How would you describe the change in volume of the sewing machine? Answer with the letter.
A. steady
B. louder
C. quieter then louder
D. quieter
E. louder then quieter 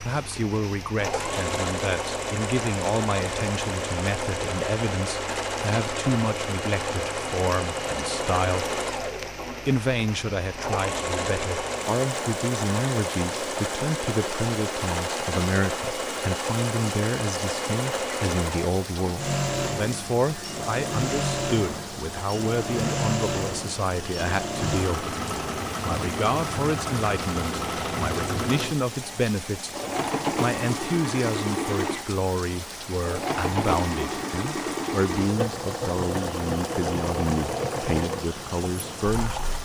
A.